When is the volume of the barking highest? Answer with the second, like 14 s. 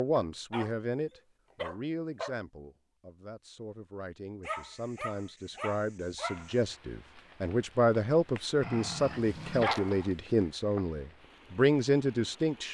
10 s.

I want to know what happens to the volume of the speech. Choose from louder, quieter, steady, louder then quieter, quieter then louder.
quieter then louder.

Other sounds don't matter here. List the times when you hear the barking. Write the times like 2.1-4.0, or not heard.
0.1-2.4, 4.4-6.5, 8.6-10.2.